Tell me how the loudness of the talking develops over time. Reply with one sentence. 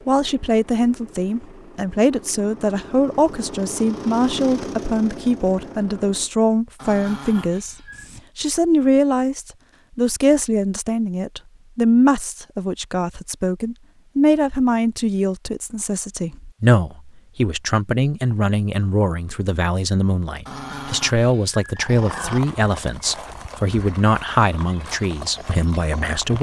The volume of the talking stays about the same.